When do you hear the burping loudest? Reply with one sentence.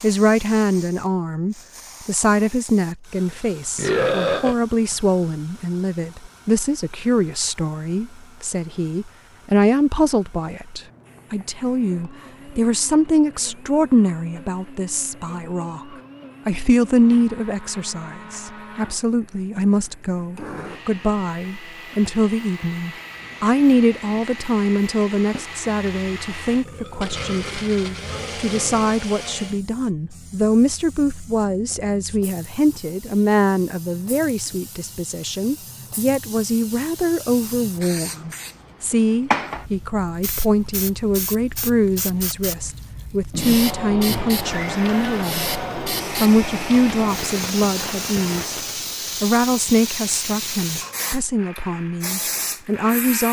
The loudest moment of the burping is at 4 seconds.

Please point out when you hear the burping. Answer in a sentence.
You can hear the burping from 3.8 to 4.5 s, from 26.6 to 28.9 s and from 43.3 to 44.5 s.